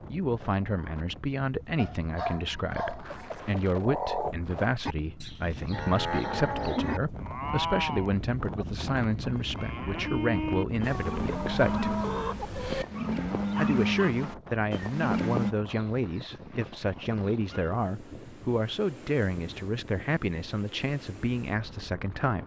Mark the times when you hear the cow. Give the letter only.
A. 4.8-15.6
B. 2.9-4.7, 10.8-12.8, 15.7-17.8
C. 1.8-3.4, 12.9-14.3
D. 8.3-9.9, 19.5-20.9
A.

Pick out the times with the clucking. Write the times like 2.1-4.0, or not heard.
2.9-4.7, 10.8-12.8, 15.7-17.8.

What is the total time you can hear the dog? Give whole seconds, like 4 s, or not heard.
3 s.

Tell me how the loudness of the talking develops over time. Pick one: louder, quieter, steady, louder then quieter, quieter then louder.
steady.